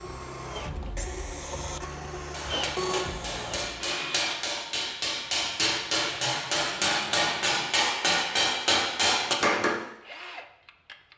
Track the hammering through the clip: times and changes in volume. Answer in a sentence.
You can hear the hammering from 2.3 to 9.8 s, getting louder.